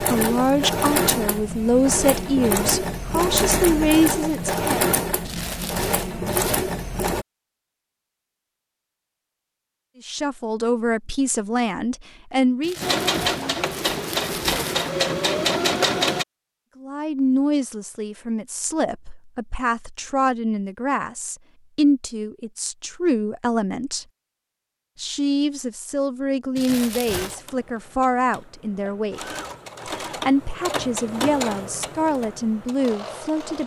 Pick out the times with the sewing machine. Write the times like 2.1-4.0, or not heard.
0.0-7.2, 12.8-16.2, 27.1-33.6.